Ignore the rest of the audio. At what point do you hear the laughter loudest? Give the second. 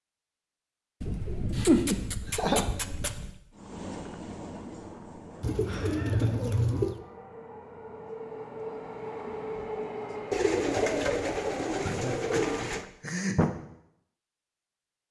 2 s.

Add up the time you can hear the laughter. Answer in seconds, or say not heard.
4 s.